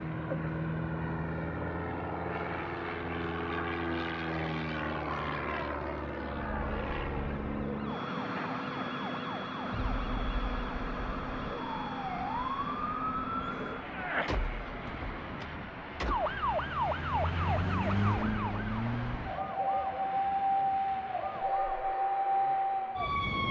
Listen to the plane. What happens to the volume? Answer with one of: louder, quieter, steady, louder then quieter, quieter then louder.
quieter.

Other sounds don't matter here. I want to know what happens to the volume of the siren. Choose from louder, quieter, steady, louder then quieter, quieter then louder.
louder.